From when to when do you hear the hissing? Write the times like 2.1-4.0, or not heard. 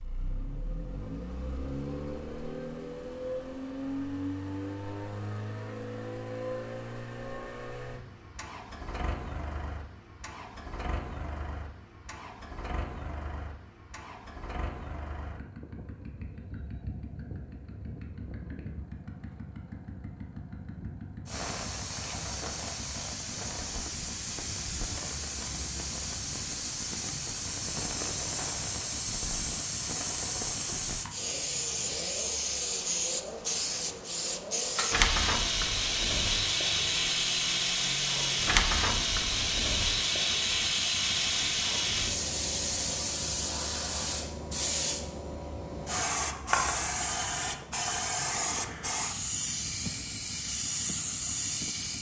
21.2-51.9.